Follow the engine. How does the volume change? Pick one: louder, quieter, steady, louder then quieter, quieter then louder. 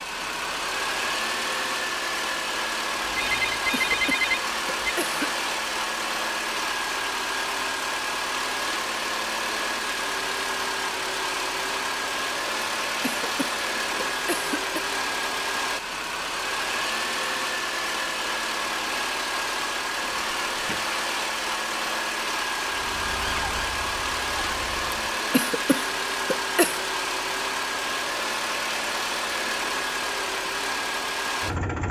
steady.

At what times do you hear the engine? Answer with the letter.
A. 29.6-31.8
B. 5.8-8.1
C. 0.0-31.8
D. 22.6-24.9
C.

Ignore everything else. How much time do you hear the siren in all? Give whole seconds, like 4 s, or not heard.
2 s.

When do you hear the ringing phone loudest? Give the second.
4 s.